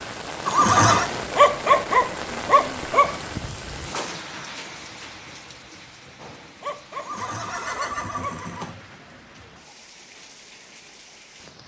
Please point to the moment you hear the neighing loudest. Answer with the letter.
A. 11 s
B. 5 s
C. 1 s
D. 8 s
C.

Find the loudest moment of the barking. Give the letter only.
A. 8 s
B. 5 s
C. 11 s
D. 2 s
D.